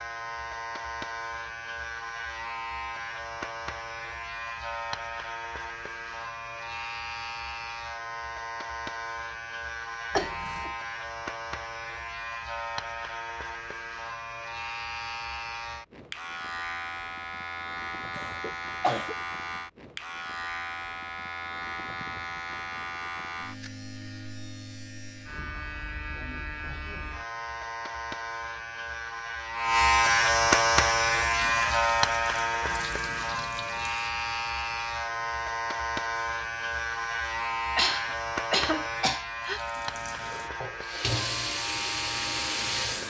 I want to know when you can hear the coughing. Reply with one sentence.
The coughing can be heard from 10.2 to 10.7 s, from 18.1 to 19.1 s and from 37.8 to 39.6 s.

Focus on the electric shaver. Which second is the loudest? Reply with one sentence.
The loudest moment of the electric shaver is at 30 seconds.